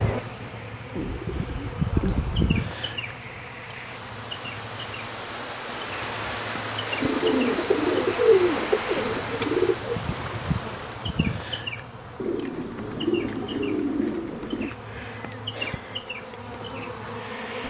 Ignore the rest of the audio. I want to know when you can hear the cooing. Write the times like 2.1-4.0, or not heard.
0.9-2.6, 7.0-10.0, 12.2-14.7.